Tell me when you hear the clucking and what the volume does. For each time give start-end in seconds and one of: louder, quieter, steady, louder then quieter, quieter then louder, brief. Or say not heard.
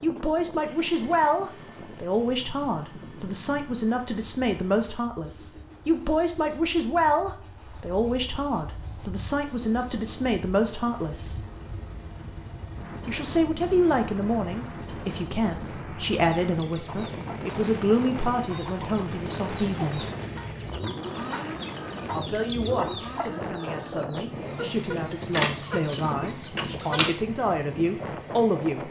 16.1-27.1 louder.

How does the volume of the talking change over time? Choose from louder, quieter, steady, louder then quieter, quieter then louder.
steady.